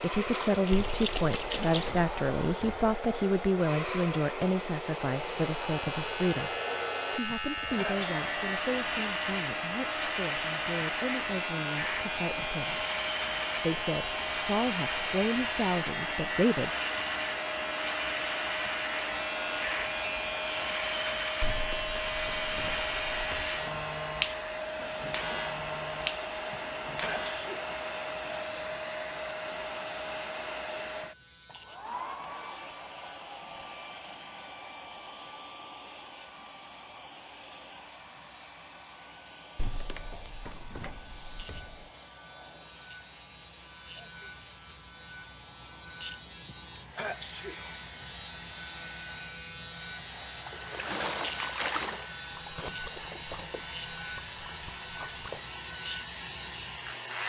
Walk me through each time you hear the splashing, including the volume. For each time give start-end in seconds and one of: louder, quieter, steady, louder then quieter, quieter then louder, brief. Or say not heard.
0.2-1.9 brief
50.1-55.5 quieter.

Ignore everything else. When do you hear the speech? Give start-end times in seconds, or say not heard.
0.0-6.5, 7.2-12.8, 13.6-16.7.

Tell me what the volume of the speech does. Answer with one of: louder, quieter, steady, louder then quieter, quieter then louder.
quieter then louder.